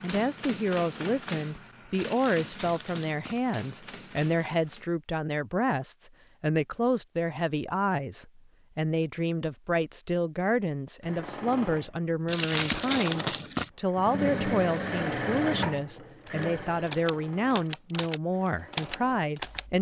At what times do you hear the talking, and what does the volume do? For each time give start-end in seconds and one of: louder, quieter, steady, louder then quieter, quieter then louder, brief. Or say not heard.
0.0-19.7 steady.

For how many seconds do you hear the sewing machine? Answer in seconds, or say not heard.
9 s.